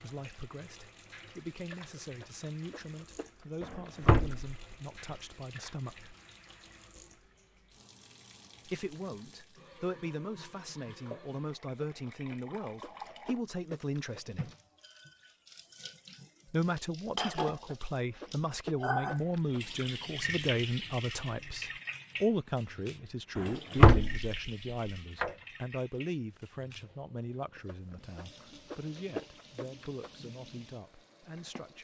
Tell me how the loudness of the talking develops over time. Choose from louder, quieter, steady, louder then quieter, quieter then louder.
louder then quieter.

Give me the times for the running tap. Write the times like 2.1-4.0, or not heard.
0.0-31.8.